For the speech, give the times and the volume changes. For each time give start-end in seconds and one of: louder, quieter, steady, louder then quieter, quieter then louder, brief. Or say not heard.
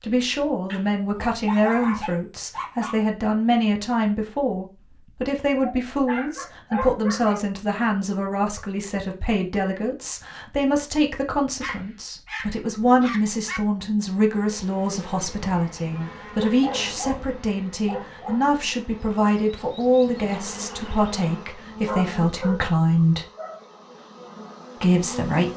0.0-23.2 steady
24.8-25.5 brief.